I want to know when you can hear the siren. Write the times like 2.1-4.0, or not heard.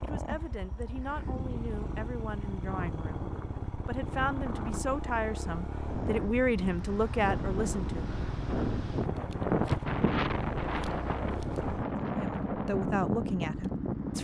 not heard.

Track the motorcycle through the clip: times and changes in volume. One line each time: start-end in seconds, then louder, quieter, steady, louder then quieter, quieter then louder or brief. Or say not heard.
0.0-14.1 louder.